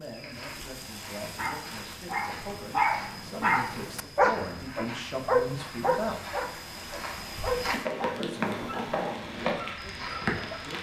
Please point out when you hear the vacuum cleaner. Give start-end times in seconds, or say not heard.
not heard.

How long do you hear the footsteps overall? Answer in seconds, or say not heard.
11 s.